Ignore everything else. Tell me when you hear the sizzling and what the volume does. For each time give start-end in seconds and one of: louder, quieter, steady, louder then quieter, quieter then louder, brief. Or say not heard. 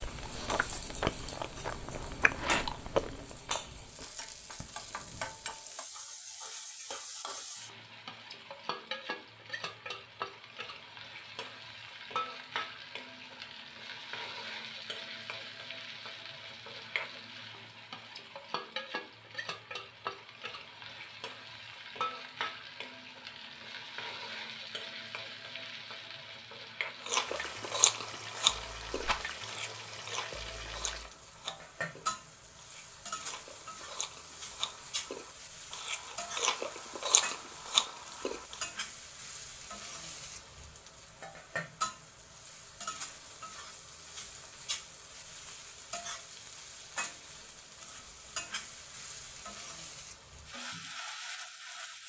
0.0-52.0 steady.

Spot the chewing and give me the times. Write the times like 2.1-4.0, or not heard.
0.0-5.7, 27.1-38.6.